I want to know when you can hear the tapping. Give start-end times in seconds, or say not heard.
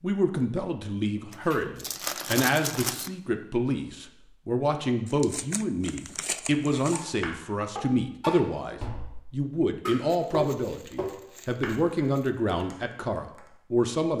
6.9-13.5.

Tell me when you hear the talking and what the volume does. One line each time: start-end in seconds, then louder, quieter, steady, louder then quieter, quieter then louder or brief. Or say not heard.
0.0-14.1 steady.